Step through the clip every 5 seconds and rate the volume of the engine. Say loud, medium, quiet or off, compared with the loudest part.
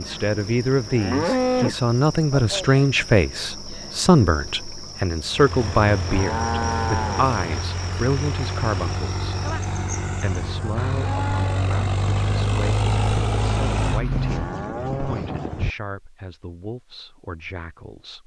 off, medium, loud, off.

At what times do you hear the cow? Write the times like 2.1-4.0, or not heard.
0.8-2.6, 5.6-7.6, 10.7-11.7, 14.1-15.7.